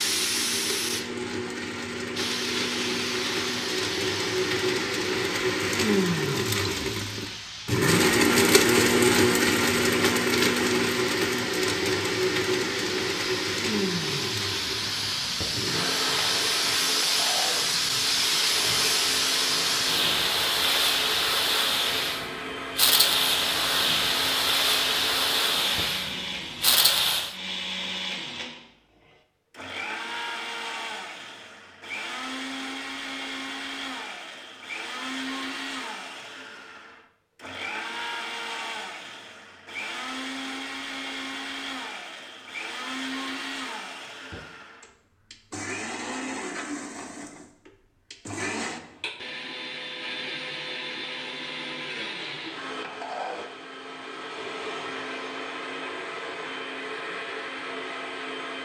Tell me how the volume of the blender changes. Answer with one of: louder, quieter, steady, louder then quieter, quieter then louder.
quieter.